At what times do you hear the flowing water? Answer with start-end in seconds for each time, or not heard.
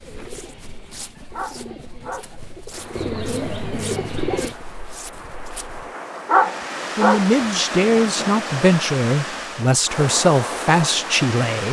2.7-11.6.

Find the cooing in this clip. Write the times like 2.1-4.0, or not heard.
0.0-4.5.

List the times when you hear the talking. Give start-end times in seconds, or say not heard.
7.0-11.6.